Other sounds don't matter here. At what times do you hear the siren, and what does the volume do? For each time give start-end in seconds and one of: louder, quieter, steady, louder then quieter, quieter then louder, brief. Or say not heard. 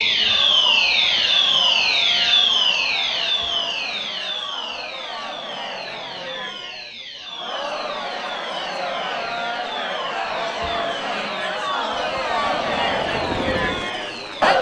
0.0-14.5 quieter.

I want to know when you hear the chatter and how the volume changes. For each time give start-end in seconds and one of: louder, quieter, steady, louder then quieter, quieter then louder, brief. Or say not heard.
0.0-14.5 louder.